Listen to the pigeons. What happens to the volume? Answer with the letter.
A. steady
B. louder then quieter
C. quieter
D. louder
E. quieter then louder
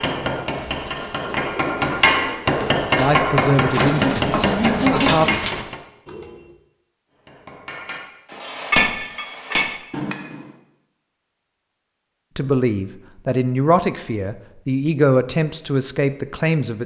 D.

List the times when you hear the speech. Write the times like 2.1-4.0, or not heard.
3.0-5.2, 12.3-16.8.